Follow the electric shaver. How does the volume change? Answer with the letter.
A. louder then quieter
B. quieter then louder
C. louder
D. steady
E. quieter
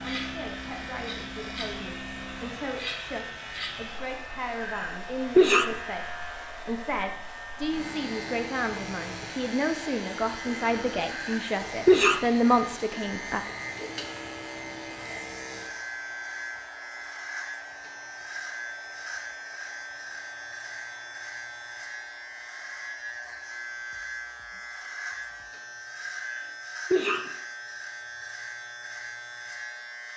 D.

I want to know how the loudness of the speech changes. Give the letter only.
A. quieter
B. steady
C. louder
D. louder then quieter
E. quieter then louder
C.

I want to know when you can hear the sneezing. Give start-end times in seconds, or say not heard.
4.6-5.7, 11.1-12.2, 26.1-27.2.